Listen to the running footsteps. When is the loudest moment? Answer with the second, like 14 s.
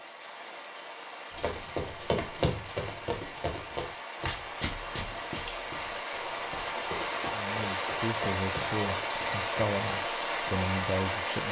2 s.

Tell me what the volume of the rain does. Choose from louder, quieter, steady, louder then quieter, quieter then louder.
louder.